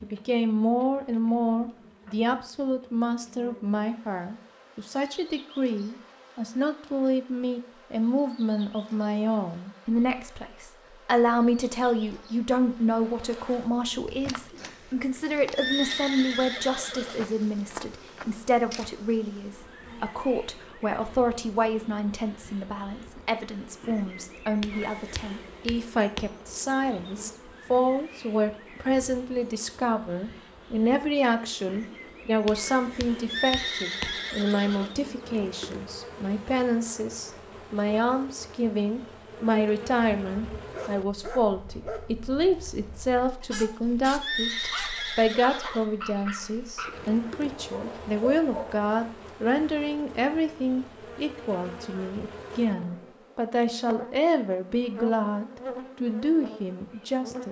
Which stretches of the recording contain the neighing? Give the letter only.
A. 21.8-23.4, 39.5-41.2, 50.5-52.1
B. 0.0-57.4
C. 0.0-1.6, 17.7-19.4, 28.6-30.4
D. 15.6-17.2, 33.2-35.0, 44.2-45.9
D.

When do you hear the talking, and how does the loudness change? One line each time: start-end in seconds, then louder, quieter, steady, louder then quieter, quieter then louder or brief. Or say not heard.
0.0-57.4 steady.